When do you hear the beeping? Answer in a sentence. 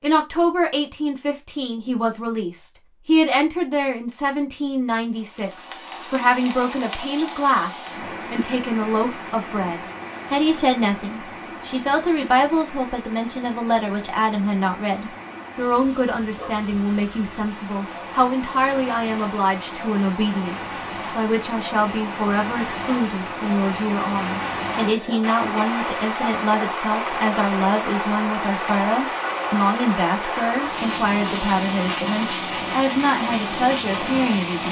The beeping can't be heard in this clip.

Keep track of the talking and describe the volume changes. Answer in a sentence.
The volume of the talking stays about the same.